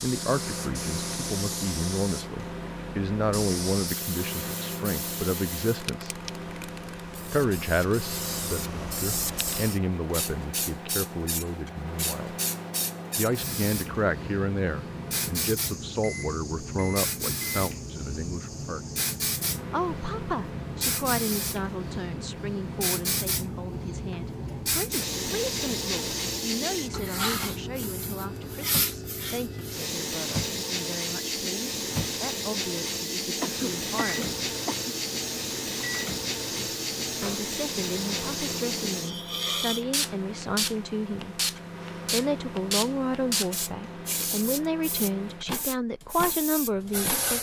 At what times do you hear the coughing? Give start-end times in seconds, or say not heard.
33.4-35.0.